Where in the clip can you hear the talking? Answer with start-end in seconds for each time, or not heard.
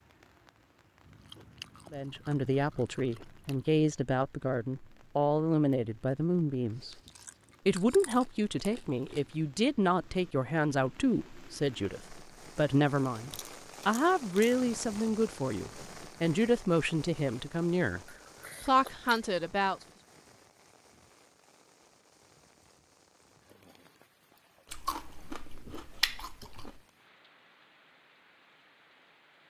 1.9-7.0, 7.7-18.0, 18.6-19.8.